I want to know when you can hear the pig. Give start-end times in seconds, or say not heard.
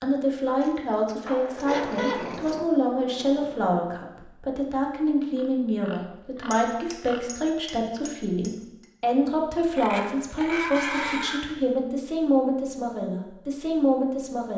0.7-2.6, 5.3-7.3, 9.8-11.4.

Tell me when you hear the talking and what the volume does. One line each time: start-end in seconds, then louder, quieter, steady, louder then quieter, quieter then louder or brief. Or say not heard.
0.0-14.5 steady.